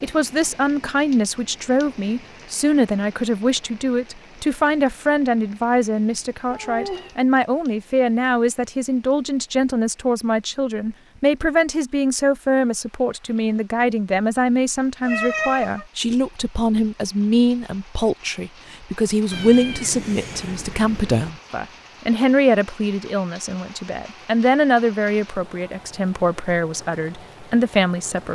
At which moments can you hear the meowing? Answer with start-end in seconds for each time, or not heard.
6.5-7.2, 15.1-15.8, 19.3-21.3.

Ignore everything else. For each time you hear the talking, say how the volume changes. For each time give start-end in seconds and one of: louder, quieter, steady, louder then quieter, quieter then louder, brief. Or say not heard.
0.0-28.2 steady.